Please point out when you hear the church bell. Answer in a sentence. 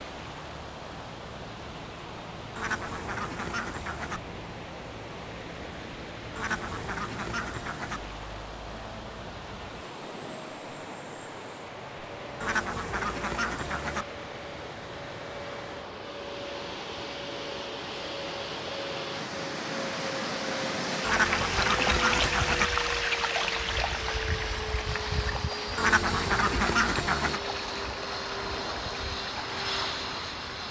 The church bell can't be heard in this clip.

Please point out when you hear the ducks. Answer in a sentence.
You can hear the ducks from 2.5 to 4.2 s, from 6.3 to 8.0 s, from 12.4 to 14.1 s, from 21.0 to 22.7 s and from 25.8 to 27.4 s.